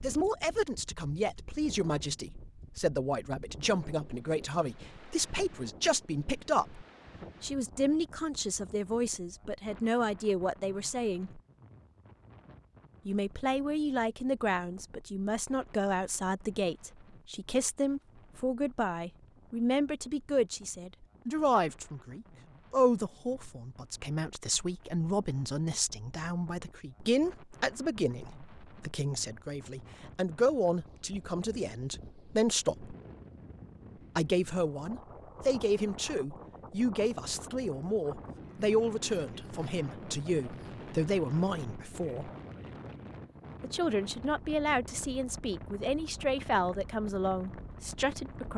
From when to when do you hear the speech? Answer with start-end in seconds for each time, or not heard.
0.0-11.4, 13.1-33.0, 34.1-42.3, 43.6-48.5.